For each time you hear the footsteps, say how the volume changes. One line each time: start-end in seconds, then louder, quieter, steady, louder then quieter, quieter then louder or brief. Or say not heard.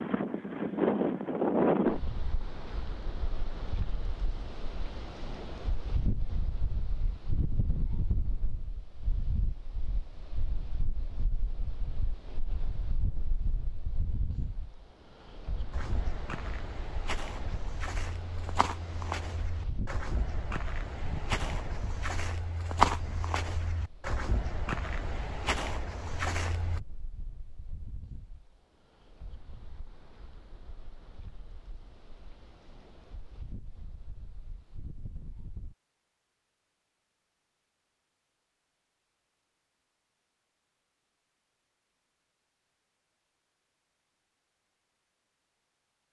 15.7-26.8 louder then quieter.